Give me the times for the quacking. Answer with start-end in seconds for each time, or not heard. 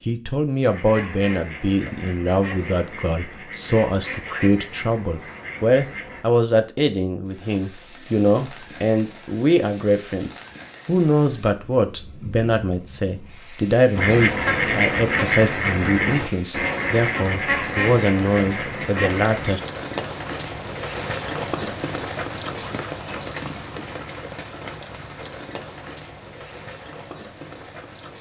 0.7-6.2, 13.9-19.6.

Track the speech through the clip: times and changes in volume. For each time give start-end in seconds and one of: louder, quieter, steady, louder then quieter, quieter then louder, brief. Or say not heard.
0.1-19.6 steady.